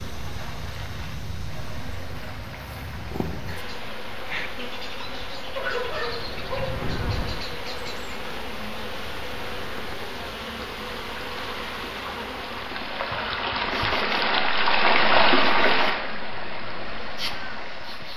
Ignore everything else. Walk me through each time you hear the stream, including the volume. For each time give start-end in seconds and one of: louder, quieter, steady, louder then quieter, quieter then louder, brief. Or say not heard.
0.0-18.1 louder.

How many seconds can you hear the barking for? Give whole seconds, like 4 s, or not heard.
2 s.